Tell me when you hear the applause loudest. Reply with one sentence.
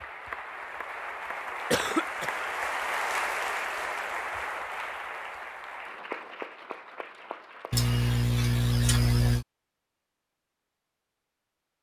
The loudest moment of the applause is at 3 seconds.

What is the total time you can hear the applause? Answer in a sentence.
You can hear the applause for 8 seconds altogether.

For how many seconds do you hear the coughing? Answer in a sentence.
The coughing can be heard for 2 seconds in total.